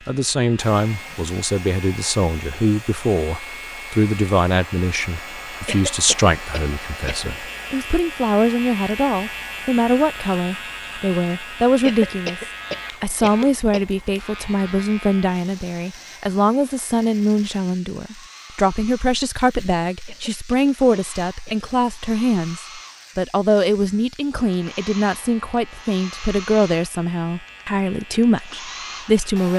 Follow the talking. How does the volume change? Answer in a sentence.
The loudness of the talking stays about the same.